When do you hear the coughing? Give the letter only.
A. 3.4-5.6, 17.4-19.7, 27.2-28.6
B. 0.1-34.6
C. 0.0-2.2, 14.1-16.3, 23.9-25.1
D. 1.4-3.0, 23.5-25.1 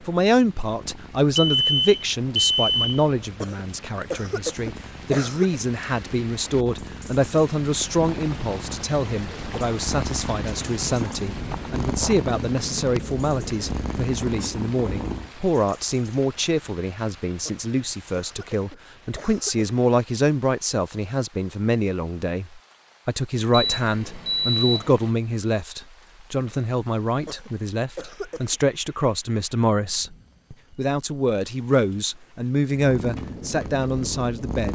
A.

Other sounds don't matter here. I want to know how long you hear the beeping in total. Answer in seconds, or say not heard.
3 s.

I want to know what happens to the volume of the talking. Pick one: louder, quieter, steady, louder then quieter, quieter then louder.
steady.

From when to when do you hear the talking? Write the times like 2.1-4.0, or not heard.
0.1-34.6.